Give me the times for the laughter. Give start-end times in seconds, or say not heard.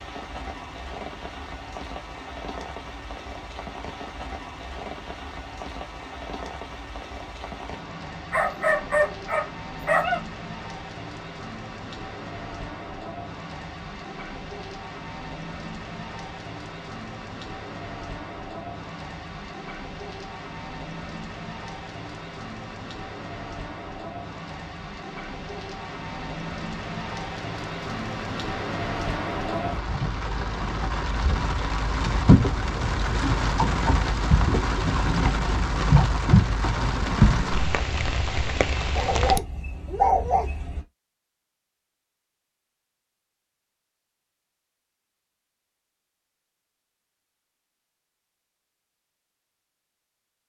not heard.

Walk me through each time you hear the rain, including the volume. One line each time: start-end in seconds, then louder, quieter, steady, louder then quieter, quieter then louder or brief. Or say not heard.
0.0-39.4 louder.